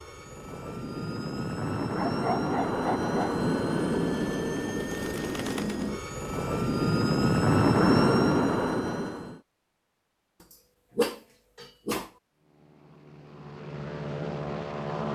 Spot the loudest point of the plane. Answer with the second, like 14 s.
8 s.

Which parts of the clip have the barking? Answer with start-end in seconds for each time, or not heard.
1.9-3.4, 10.9-12.1.